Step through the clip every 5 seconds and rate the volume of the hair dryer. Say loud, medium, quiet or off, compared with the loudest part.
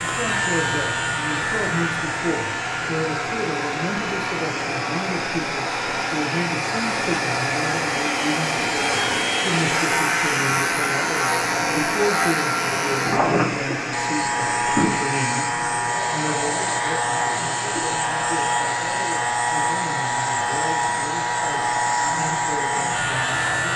medium, loud, loud, medium, medium.